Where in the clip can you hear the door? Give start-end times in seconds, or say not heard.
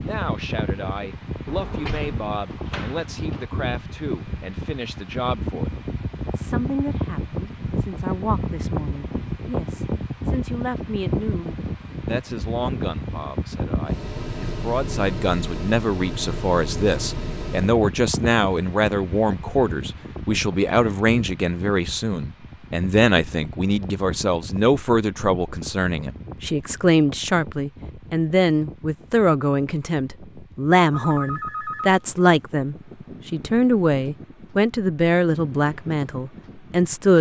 1.4-3.5.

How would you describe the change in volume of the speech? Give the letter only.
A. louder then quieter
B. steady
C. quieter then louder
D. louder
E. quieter
D.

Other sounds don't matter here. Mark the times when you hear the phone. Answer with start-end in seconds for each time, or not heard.
30.9-32.2.